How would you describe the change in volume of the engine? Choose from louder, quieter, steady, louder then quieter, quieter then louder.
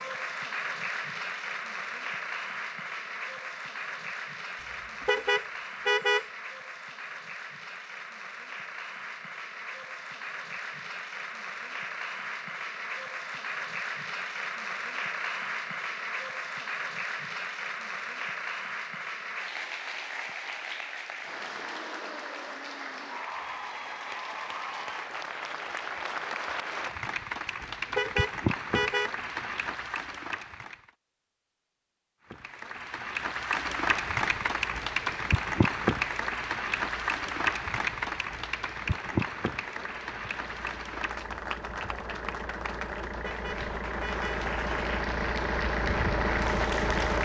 louder.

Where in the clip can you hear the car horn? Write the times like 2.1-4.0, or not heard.
5.0-6.2, 27.9-29.1, 43.2-44.4.